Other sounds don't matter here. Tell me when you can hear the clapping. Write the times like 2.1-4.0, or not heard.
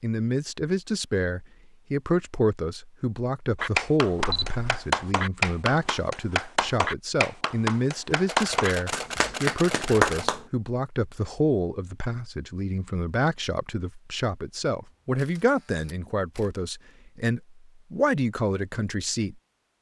3.5-10.4.